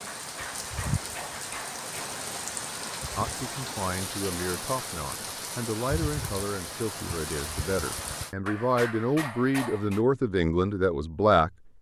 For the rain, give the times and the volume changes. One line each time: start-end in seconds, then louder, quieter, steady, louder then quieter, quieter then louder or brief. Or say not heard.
0.0-8.3 steady.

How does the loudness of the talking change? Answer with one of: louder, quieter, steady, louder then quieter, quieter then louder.
louder.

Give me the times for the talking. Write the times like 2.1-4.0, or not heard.
3.1-11.5.